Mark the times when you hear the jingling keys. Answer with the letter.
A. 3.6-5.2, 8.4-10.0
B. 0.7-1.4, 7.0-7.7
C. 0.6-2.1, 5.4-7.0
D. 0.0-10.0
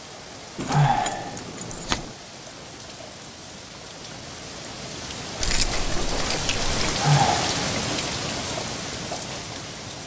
C.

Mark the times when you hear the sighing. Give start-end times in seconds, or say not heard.
0.7-1.4, 7.0-7.7.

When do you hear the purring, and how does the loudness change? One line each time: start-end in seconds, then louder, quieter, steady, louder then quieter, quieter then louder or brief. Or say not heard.
not heard.